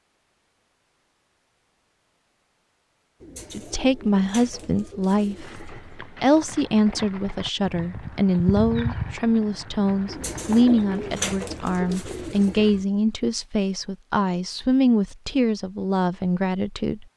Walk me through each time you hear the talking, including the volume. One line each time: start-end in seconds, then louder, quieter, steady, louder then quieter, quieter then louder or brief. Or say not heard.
3.5-17.1 steady.